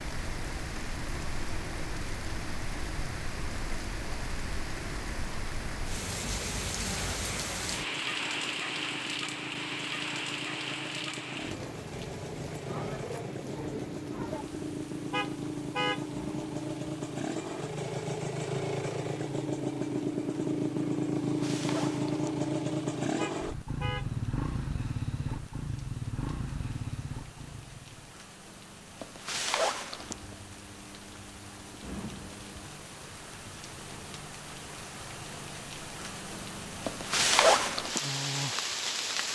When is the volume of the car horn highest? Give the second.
16 s.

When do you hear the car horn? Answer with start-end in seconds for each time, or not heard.
15.1-16.1, 23.1-24.1.